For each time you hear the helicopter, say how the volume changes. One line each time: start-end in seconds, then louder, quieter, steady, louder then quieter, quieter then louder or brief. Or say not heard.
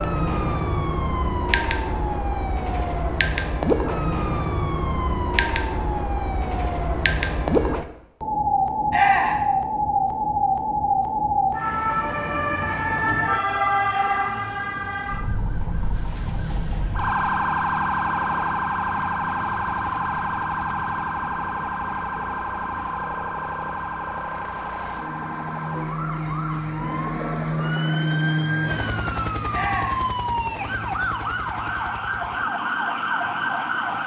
18.1-34.0 louder then quieter.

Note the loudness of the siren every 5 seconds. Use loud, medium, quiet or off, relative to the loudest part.
loud, loud, loud, loud, medium, medium, loud.